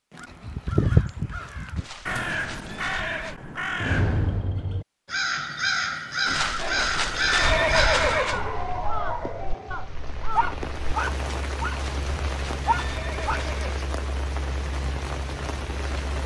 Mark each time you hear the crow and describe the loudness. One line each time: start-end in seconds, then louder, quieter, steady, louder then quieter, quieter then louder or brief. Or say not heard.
0.1-10.8 quieter.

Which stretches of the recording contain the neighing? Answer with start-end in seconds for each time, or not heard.
1.8-3.4, 6.2-8.4, 11.7-13.8.